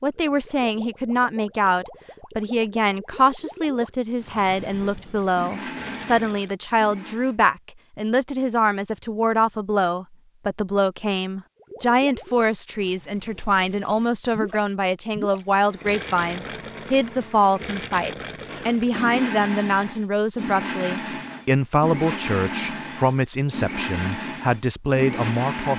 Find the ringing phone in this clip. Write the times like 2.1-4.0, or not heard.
not heard.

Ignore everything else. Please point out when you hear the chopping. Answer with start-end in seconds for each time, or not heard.
not heard.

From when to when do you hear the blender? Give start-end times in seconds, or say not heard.
4.5-7.3, 15.5-25.7.